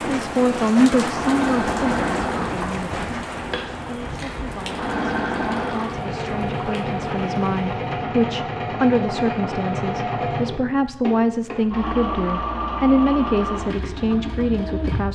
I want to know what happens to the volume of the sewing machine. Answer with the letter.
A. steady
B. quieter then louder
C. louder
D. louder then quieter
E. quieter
A.